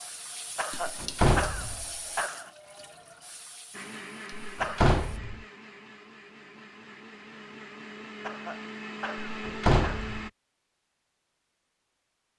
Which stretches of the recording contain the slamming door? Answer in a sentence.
The slamming door can be heard from 0.8 to 1.9 s, from 4.4 to 5.5 s and from 9.3 to 10.3 s.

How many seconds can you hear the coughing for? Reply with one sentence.
The coughing can be heard for 4 seconds in total.